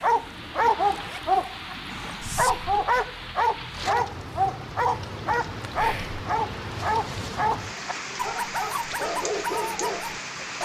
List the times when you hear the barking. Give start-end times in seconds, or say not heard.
0.0-10.6.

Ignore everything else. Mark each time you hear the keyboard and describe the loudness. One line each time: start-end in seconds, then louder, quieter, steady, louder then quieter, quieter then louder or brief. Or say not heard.
not heard.